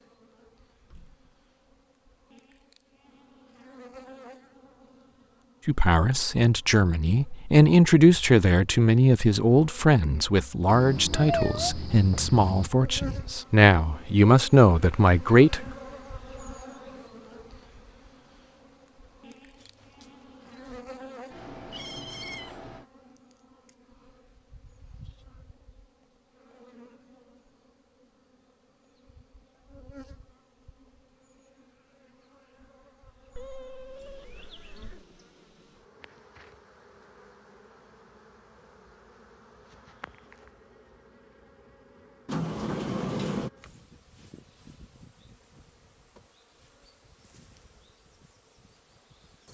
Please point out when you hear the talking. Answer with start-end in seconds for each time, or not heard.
5.7-15.7.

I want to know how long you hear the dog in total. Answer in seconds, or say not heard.
not heard.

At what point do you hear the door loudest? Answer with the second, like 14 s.
43 s.